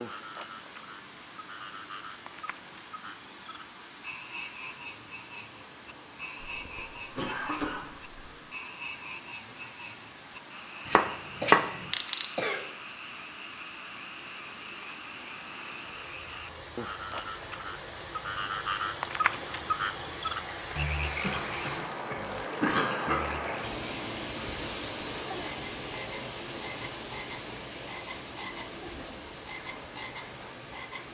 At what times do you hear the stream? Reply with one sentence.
The stream can be heard from 0.0 to 31.0 s.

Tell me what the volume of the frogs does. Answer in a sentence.
The volume of the frogs goes up, then down.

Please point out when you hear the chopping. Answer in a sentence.
You can hear the chopping from 10.8 to 12.2 s.